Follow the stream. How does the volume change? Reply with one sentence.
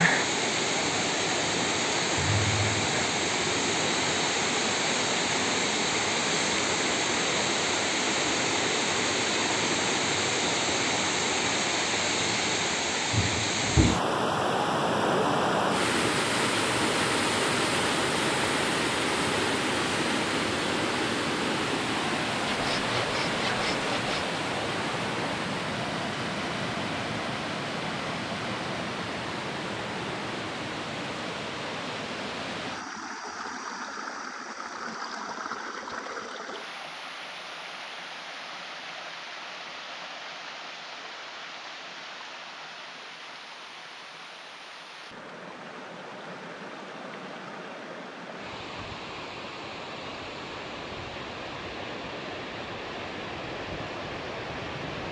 The loudness of the stream goes down.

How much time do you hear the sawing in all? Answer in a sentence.
The sawing can be heard for 2 seconds in total.